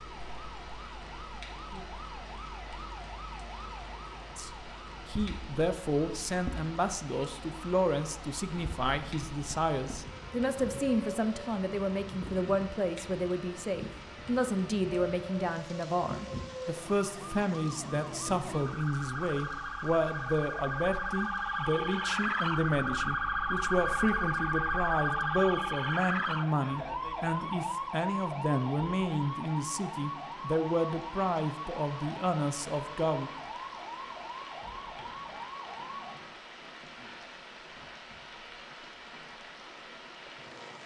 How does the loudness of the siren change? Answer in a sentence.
The volume of the siren goes up, then down.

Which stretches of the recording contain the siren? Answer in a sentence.
You can hear the siren from 0.0 to 36.1 s.